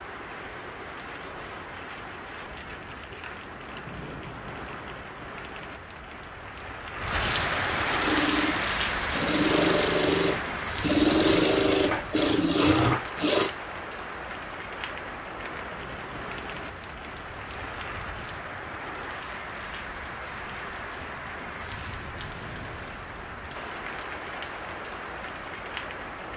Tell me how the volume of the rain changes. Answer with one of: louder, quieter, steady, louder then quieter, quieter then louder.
louder then quieter.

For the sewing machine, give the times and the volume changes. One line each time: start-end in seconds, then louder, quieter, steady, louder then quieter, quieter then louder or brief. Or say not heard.
8.0-13.5 louder.